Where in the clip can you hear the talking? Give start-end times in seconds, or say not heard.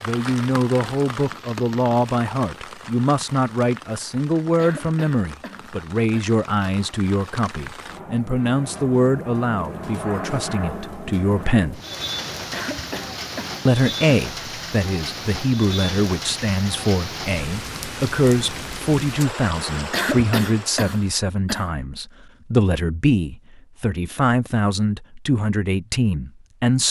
0.0-11.8, 13.7-26.8.